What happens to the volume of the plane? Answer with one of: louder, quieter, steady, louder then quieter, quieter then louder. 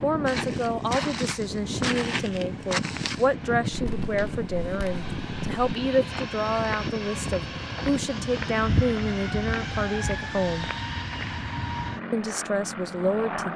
steady.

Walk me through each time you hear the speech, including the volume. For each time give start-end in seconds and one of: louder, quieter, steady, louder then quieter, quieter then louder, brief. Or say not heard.
0.0-10.7 steady
12.1-13.5 brief.